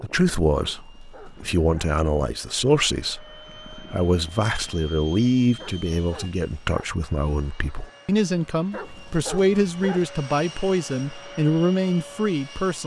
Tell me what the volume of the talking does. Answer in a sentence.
The volume of the talking stays about the same.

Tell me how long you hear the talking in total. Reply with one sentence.
The talking can be heard for 13 seconds in total.